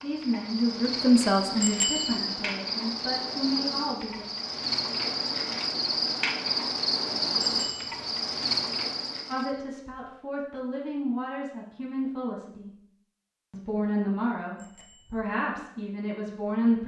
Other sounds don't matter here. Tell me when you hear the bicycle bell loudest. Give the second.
2 s.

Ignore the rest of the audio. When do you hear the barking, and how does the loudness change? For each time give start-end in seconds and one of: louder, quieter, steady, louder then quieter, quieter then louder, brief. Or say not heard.
not heard.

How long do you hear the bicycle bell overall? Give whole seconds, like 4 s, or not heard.
2 s.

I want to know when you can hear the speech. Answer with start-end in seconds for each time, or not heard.
0.0-4.2, 9.3-12.7, 13.5-16.8.